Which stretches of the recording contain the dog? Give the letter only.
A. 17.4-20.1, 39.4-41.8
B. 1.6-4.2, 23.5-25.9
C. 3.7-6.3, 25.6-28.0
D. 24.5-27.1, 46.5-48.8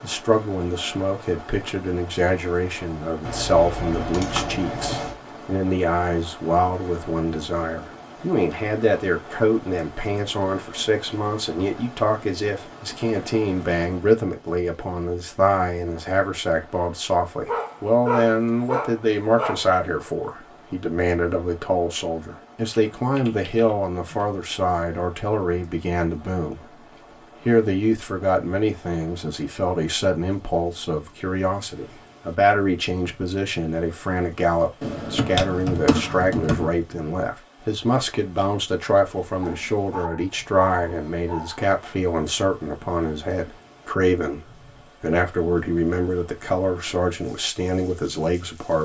A.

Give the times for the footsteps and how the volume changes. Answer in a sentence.
You can't hear the footsteps here.